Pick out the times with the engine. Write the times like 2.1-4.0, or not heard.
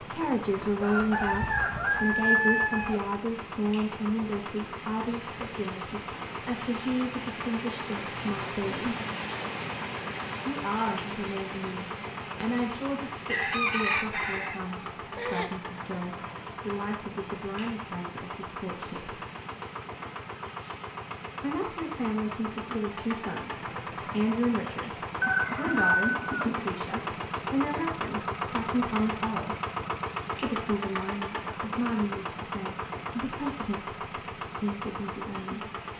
0.0-35.9.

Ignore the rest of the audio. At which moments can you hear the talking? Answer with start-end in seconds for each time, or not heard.
0.0-8.8, 10.4-19.1, 21.4-29.6, 30.4-35.6.